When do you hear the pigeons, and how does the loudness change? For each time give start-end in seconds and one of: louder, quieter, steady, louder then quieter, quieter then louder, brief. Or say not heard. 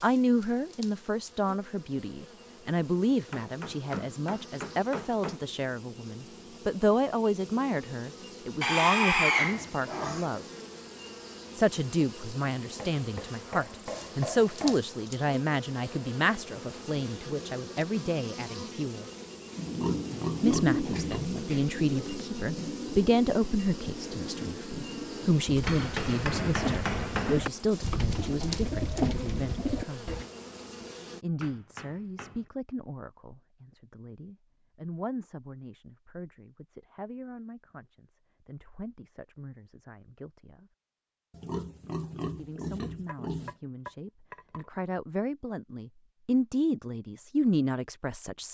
19.5-30.2 quieter then louder.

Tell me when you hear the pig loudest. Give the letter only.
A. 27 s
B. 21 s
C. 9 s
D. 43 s
C.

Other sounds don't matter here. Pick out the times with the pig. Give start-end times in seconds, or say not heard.
8.6-10.2, 19.6-21.4, 41.3-43.5.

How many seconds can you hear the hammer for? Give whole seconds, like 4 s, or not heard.
9 s.